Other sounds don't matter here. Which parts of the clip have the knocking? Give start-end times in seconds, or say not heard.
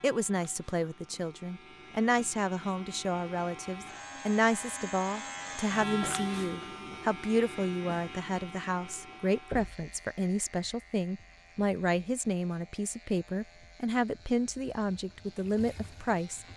9.5-9.9.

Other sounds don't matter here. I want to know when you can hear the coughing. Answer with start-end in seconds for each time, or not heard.
not heard.